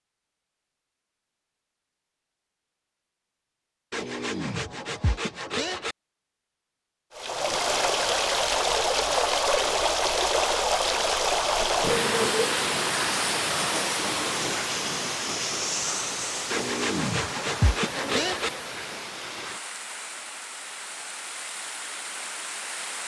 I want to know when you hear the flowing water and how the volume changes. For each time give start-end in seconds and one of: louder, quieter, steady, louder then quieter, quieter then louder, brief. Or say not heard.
7.1-23.0 quieter.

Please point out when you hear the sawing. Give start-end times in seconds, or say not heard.
3.9-6.0, 16.5-18.5.